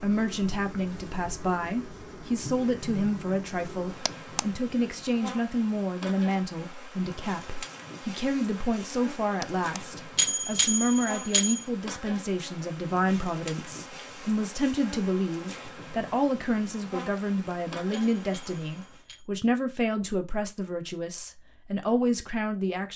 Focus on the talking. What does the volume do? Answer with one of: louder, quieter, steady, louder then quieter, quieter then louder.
steady.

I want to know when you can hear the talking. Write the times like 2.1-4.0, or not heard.
0.0-22.9.